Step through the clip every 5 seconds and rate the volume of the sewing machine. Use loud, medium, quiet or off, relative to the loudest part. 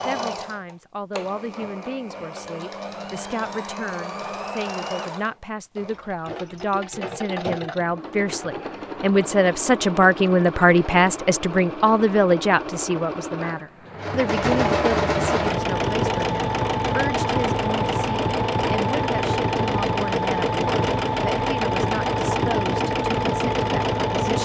medium, medium, medium, loud, loud.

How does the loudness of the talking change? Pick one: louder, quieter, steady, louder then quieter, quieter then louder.
louder then quieter.